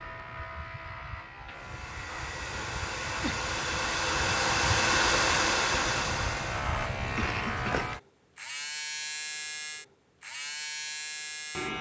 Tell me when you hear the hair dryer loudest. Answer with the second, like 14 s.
5 s.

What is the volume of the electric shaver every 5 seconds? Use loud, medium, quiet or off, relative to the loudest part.
medium, loud, loud.